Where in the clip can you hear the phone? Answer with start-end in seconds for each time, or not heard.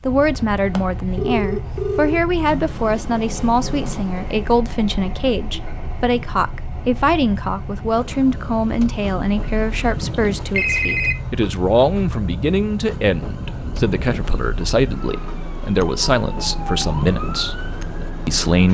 0.8-2.2, 9.8-11.2.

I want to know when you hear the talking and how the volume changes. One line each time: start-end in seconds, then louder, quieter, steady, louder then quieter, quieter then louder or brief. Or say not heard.
0.1-17.6 steady
18.2-18.7 brief.